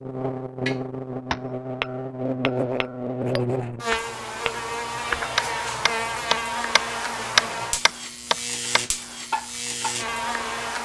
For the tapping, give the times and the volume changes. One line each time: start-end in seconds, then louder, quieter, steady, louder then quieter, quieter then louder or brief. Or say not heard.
0.7-9.9 louder then quieter.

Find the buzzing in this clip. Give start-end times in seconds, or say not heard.
0.0-10.7.